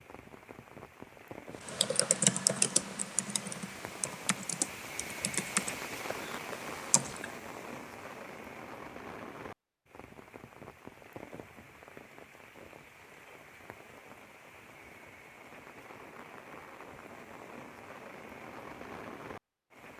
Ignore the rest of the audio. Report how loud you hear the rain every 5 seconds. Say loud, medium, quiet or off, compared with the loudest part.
medium, loud, medium, medium.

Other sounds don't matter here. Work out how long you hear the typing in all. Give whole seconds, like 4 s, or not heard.
6 s.